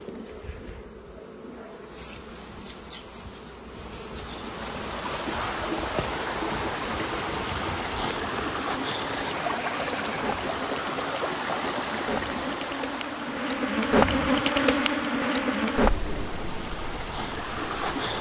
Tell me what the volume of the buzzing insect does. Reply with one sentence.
The volume of the buzzing insect goes up.